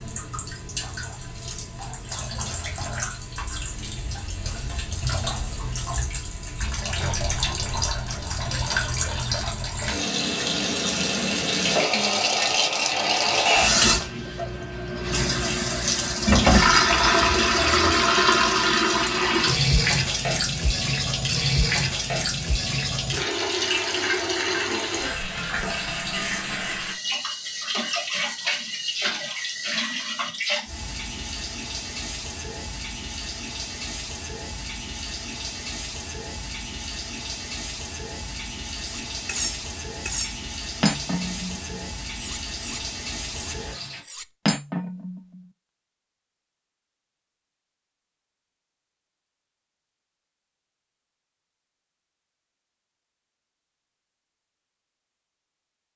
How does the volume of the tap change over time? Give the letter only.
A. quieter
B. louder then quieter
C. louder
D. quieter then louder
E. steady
B.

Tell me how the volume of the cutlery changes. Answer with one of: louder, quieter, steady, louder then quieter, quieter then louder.
quieter then louder.